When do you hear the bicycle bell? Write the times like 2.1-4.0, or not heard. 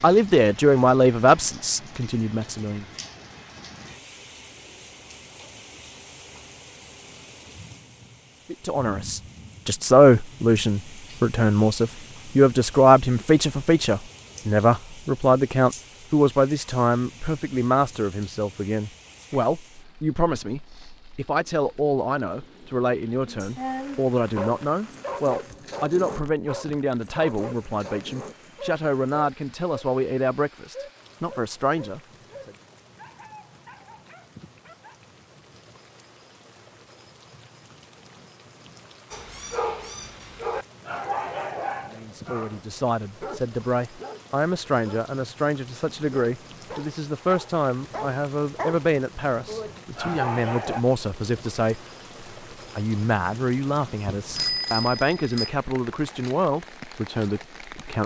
54.0-55.5.